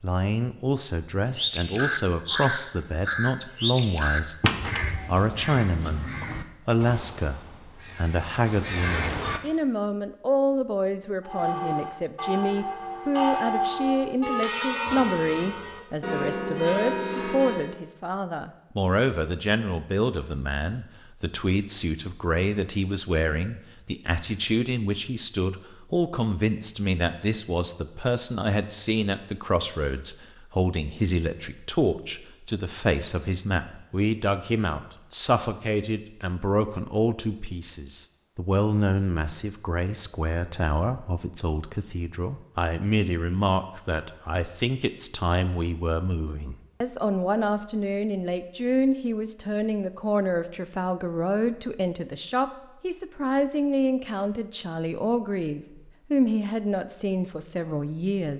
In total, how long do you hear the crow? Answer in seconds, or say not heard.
8 s.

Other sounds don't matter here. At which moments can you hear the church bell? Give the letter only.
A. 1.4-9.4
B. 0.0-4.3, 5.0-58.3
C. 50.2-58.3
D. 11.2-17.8
D.